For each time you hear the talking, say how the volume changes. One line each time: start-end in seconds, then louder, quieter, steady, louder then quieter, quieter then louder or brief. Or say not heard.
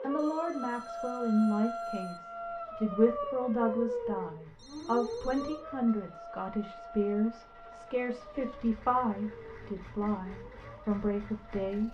0.0-11.9 steady.